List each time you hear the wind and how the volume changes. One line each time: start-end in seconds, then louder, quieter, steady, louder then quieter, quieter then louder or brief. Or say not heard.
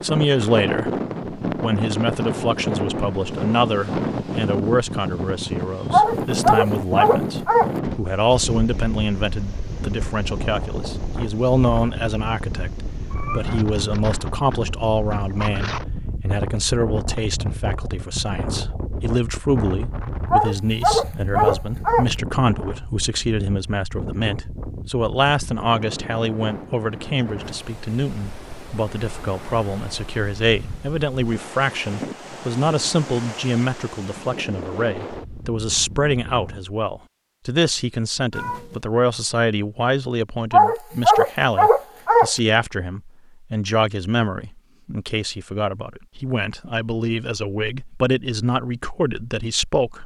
0.0-36.6 quieter.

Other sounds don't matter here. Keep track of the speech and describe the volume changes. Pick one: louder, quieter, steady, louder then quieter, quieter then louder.
steady.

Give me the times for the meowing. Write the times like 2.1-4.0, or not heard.
13.1-13.7, 38.3-38.8.